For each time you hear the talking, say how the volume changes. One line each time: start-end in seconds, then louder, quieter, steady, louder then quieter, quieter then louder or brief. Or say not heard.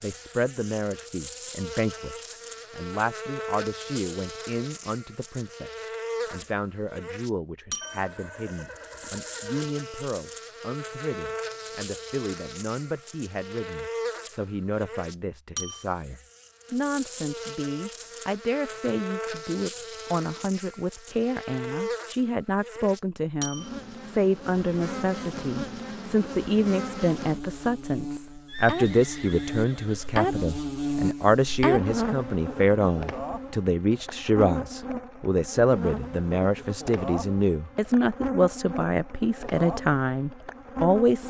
0.0-41.2 louder.